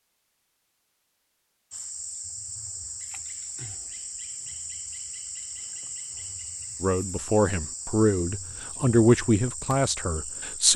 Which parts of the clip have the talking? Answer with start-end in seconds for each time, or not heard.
6.8-10.7.